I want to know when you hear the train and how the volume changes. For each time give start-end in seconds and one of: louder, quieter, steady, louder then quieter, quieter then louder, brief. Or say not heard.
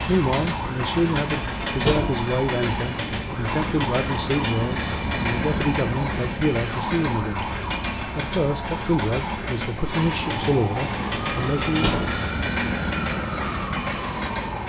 0.0-14.6 steady.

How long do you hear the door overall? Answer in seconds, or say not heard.
2 s.